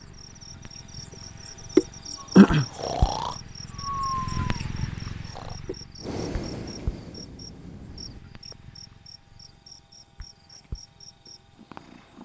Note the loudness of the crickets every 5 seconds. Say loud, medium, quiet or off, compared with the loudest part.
loud, quiet, quiet.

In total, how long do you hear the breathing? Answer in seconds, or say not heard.
6 s.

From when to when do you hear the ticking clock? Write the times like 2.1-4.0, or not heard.
not heard.